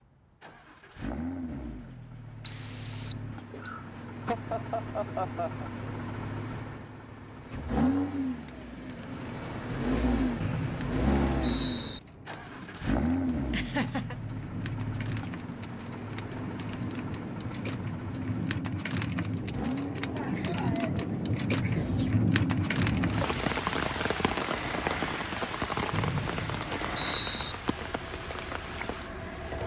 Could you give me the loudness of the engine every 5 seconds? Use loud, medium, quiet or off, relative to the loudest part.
medium, loud, loud, medium, medium, medium.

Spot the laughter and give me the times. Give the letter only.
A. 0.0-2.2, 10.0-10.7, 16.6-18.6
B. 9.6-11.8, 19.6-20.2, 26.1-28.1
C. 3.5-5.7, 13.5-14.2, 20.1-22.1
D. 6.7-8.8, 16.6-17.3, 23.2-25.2
C.